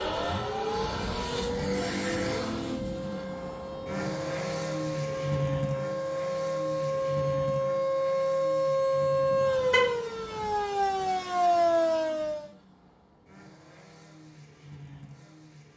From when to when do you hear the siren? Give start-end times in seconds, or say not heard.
0.0-12.5.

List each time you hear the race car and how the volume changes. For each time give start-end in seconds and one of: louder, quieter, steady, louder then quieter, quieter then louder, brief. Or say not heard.
0.0-15.7 quieter.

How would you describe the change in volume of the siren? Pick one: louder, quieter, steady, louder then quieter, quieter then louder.
louder.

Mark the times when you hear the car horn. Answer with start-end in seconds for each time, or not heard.
9.3-10.6.